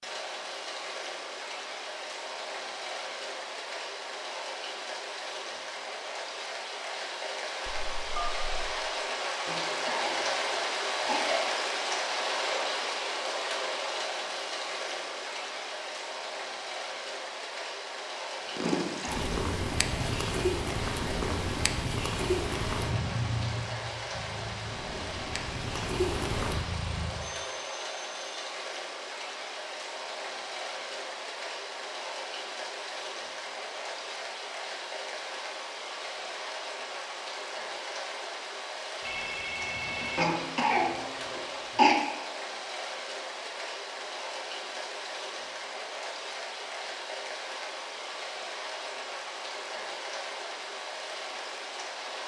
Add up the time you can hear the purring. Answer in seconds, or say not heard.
9 s.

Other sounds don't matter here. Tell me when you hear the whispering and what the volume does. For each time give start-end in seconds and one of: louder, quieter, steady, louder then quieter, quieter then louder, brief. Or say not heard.
not heard.